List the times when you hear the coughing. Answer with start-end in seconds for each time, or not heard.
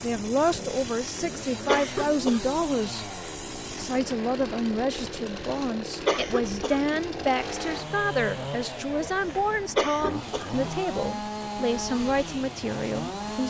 1.6-2.4, 6.0-7.0, 9.8-10.7.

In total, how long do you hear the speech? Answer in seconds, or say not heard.
13 s.